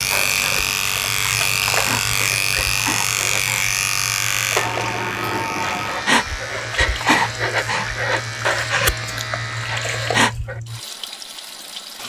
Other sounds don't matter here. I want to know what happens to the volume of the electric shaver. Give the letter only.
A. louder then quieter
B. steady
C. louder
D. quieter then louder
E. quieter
E.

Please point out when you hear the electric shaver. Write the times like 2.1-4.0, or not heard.
0.0-10.2.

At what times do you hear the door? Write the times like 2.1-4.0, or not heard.
4.5-6.2.